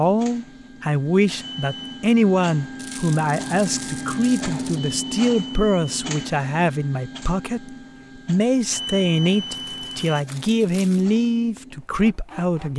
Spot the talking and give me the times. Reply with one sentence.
You can hear the talking from 0.0 to 12.7 s.